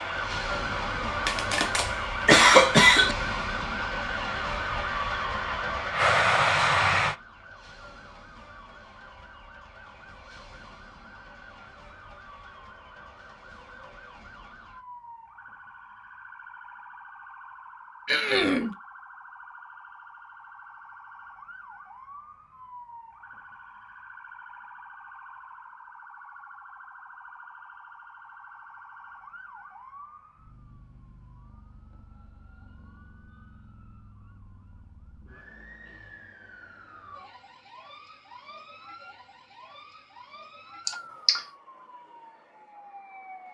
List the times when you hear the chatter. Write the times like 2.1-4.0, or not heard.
not heard.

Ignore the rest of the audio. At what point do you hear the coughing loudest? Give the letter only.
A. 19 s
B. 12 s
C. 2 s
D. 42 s
C.